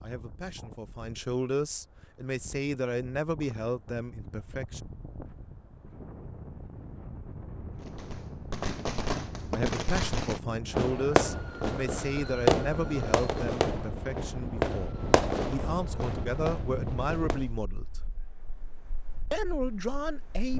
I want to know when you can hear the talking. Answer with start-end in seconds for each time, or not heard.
0.0-4.8, 9.5-18.0, 19.3-20.5.